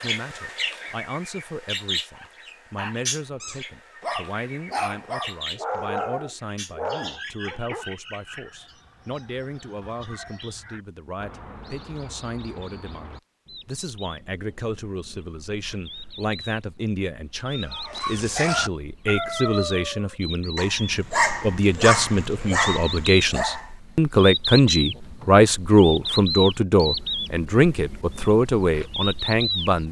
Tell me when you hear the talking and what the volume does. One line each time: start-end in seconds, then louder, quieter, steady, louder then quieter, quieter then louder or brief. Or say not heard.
0.0-29.8 louder.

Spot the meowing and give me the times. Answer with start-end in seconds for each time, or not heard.
not heard.